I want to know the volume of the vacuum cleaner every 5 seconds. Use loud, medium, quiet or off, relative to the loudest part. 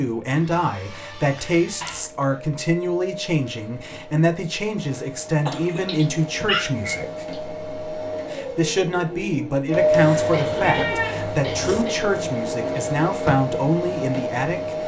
quiet, loud, loud.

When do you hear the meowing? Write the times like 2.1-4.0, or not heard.
1.4-2.1, 5.8-7.4, 9.9-11.8.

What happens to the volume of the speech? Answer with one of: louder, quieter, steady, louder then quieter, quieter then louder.
steady.